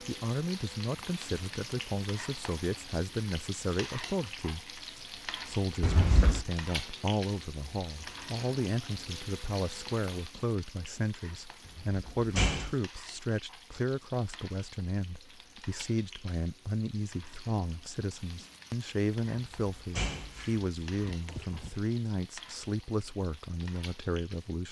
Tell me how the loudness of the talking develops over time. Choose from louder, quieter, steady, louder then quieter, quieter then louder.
steady.